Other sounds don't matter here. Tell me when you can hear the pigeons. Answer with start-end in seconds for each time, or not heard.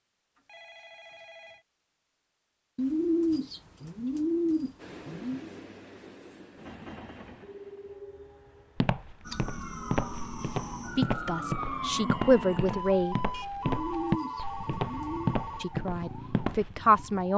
2.8-5.5, 13.6-15.3.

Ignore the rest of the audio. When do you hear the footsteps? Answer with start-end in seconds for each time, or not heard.
8.8-16.8.